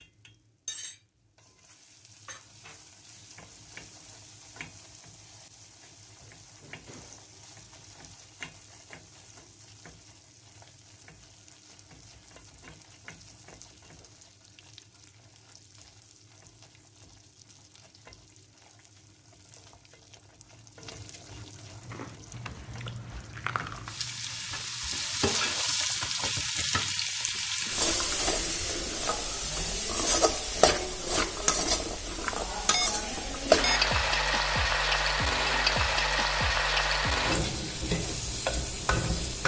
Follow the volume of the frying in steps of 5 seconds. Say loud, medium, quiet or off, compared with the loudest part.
quiet, quiet, quiet, quiet, quiet, loud, loud, loud.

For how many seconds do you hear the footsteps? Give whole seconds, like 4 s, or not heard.
not heard.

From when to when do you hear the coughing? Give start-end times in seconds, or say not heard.
not heard.